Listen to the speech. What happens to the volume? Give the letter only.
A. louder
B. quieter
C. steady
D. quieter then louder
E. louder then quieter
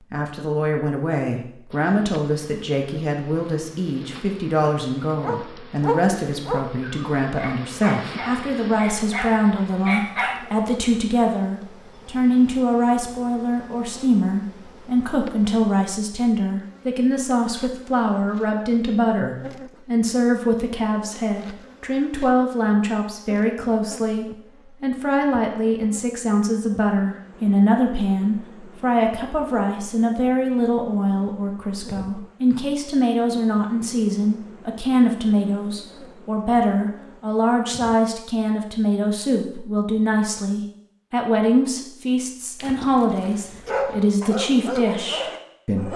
C.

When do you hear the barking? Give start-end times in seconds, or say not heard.
5.2-10.4, 42.6-45.9.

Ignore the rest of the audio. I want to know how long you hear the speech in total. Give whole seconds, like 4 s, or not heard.
46 s.